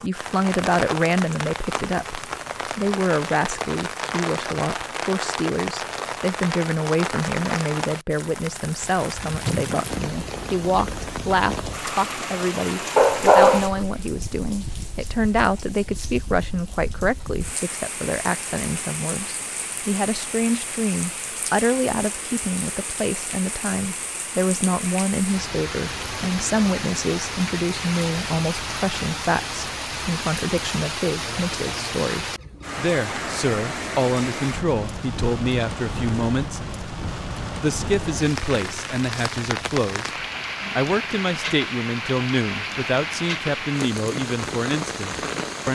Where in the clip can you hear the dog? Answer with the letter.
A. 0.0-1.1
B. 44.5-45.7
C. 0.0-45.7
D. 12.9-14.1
D.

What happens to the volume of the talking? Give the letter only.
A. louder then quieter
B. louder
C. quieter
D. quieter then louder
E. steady
E.